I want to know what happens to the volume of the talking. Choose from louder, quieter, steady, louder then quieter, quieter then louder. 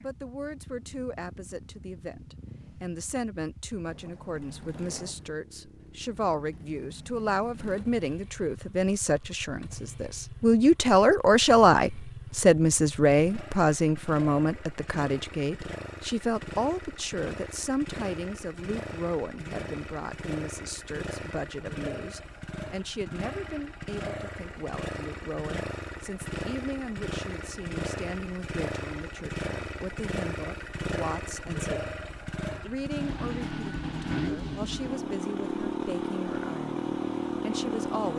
louder then quieter.